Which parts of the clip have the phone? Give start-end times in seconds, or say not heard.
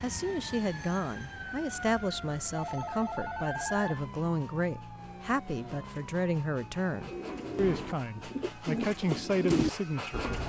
2.5-3.9.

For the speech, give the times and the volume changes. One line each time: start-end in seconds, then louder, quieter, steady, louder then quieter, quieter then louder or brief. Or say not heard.
0.0-10.3 steady.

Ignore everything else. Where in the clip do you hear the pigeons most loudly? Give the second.
10 s.